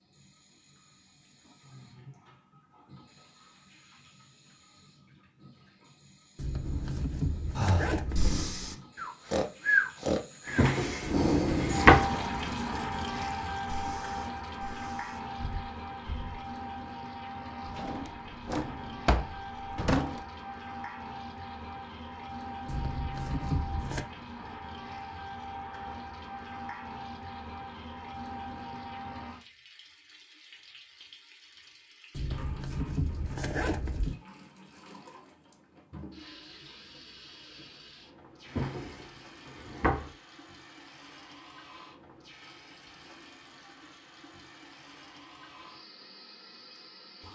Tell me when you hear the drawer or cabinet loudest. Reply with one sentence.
The volume of the drawer or cabinet peaks at 12 seconds.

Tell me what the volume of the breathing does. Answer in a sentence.
The volume of the breathing goes up, then down.